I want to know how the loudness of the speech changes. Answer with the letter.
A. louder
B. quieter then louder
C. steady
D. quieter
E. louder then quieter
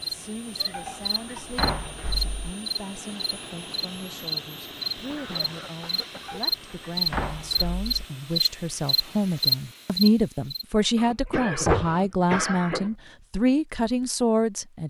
A.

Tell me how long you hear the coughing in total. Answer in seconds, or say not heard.
4 s.